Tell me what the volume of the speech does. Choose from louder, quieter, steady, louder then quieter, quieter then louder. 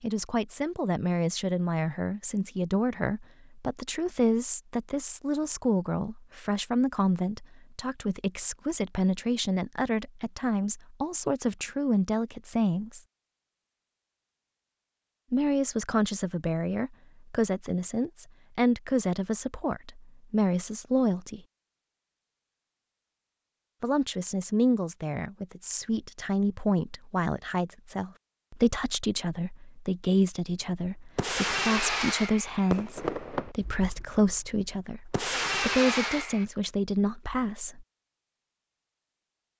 steady.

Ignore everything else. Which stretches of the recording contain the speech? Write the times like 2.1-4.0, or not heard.
0.0-13.0, 15.3-21.4, 23.8-37.9.